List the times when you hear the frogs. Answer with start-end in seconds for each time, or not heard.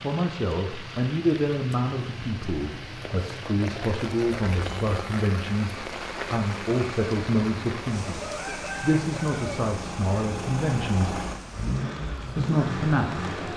not heard.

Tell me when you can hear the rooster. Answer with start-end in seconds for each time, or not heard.
8.2-9.7.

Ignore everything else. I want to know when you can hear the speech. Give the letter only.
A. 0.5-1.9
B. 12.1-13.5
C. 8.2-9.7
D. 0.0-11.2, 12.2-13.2
D.